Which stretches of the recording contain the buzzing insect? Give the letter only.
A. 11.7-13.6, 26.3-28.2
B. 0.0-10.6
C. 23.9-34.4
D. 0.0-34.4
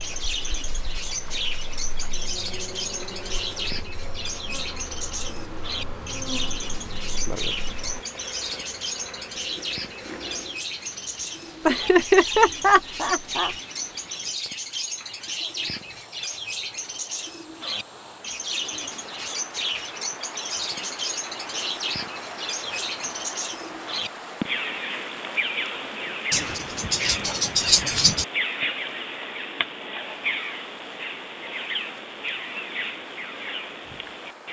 B.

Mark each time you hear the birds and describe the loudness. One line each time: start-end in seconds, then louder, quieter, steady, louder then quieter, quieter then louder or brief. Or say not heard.
0.0-34.4 steady.